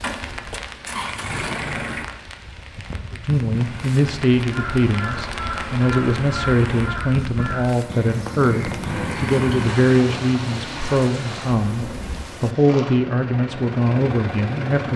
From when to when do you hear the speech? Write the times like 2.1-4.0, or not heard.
3.1-14.9.